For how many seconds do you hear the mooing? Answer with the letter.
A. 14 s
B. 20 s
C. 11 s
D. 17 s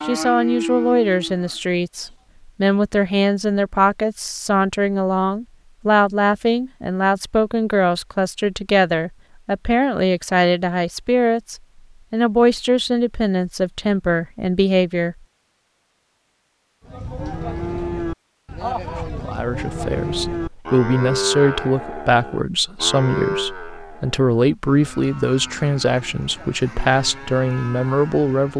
A.